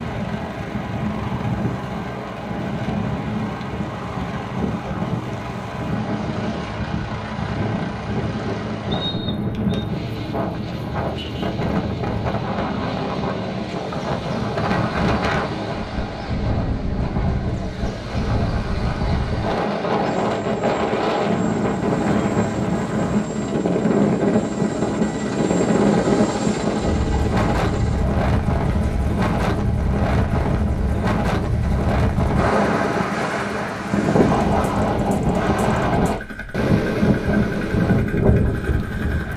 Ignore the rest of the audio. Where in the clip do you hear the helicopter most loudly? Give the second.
26 s.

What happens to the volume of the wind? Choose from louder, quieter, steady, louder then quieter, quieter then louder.
louder.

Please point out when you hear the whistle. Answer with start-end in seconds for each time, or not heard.
8.9-9.8.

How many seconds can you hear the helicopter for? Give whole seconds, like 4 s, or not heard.
39 s.